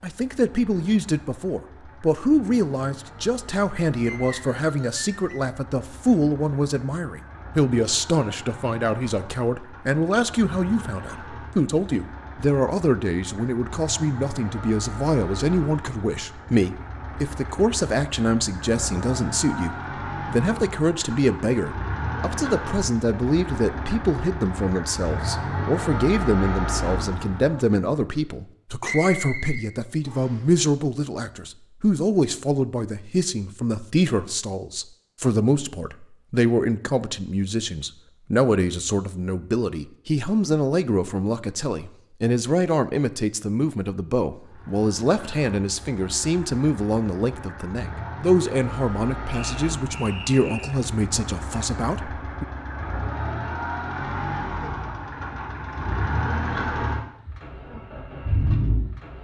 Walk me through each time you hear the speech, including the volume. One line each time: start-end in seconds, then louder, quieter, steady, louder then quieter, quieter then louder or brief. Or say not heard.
0.0-52.5 steady.